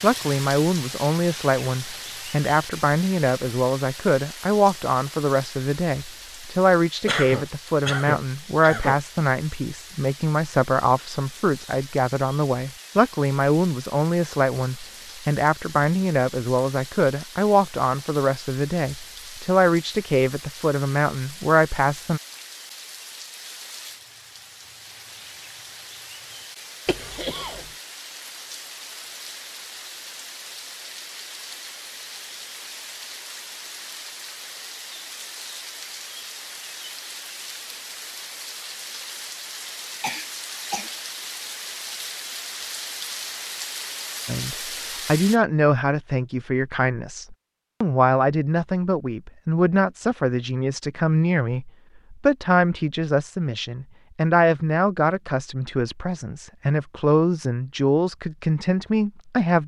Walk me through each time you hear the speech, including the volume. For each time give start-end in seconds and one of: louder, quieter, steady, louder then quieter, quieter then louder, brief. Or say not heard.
0.0-22.2 steady
44.2-59.6 steady.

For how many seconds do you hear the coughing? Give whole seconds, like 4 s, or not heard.
4 s.